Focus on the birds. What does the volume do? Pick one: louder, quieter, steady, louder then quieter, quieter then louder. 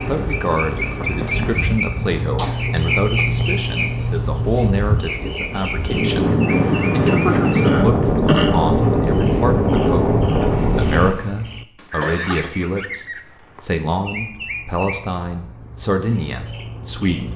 quieter.